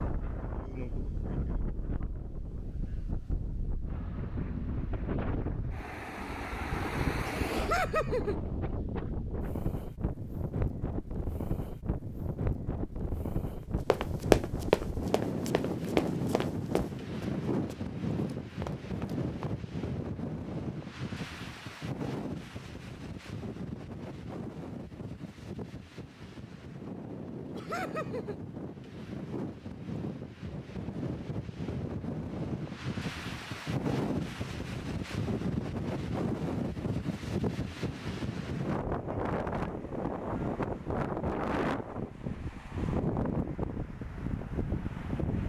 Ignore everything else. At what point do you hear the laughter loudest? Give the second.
8 s.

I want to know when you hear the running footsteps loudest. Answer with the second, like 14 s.
14 s.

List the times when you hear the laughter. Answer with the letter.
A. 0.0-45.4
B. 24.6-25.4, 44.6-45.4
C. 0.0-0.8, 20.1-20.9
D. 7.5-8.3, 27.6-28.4
D.